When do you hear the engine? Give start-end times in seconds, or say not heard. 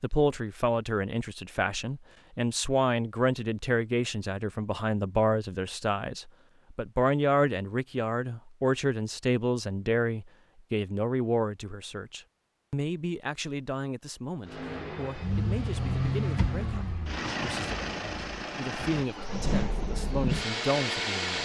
14.4-21.4.